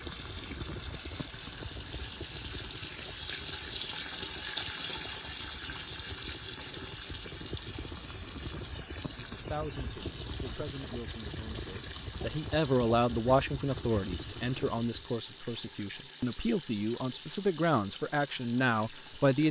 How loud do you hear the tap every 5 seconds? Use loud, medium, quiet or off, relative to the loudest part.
loud, loud, medium, medium.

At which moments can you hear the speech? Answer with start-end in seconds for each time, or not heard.
9.0-19.4.